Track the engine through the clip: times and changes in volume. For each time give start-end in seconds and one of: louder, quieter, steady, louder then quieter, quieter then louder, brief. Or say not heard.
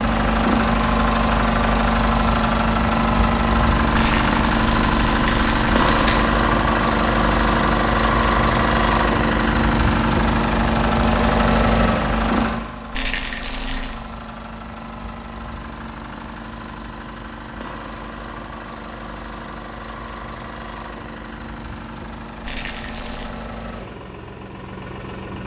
0.0-25.4 quieter.